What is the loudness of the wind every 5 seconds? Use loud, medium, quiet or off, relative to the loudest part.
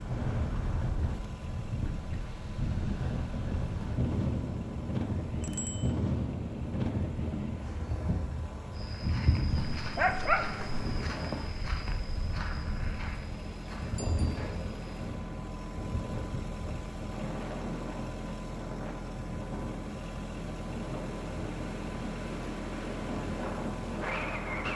loud, loud, medium, medium, loud.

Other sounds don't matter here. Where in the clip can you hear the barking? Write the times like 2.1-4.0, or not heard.
9.4-10.8.